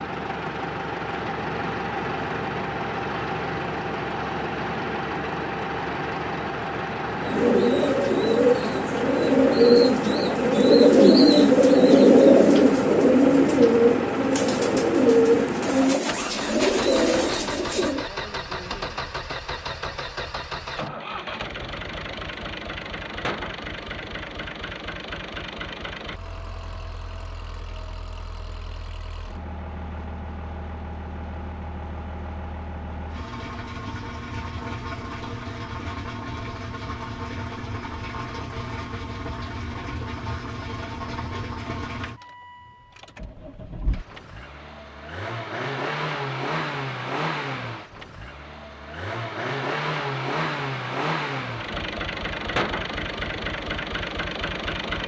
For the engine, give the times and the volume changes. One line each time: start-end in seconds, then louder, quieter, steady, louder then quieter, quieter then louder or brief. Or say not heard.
0.0-55.0 quieter then louder.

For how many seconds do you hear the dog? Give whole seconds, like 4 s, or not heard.
not heard.